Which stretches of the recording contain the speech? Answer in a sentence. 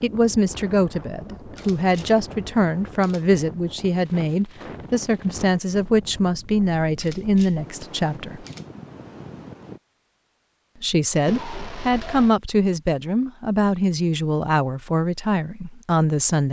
The speech can be heard from 0.0 to 8.4 s and from 10.8 to 16.4 s.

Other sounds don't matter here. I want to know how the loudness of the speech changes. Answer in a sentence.
The loudness of the speech stays about the same.